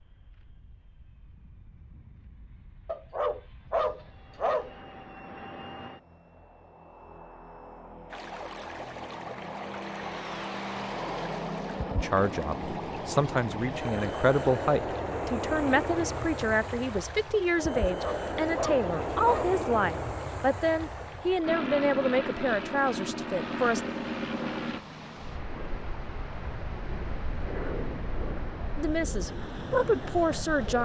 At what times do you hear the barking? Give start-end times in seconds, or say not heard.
2.9-4.8, 17.9-19.6.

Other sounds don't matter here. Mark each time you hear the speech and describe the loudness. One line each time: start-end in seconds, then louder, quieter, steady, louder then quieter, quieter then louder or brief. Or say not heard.
11.9-23.8 steady
28.8-30.8 brief.